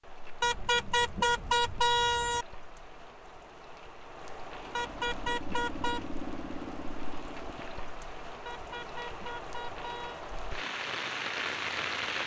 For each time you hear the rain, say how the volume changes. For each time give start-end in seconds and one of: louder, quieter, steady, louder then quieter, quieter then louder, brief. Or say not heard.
0.0-12.2 louder.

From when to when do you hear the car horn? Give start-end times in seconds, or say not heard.
0.4-2.5, 4.7-6.1, 8.4-10.3.